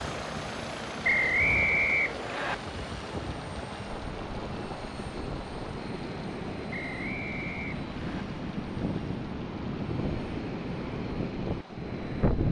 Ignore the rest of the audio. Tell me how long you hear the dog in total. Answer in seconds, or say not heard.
not heard.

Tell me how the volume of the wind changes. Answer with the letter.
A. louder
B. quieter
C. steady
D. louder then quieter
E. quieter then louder
A.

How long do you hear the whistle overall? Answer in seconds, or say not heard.
3 s.